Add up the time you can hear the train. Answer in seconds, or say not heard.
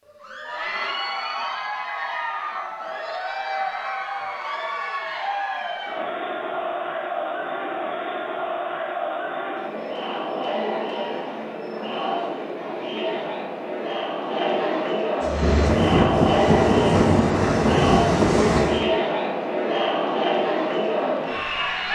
4 s.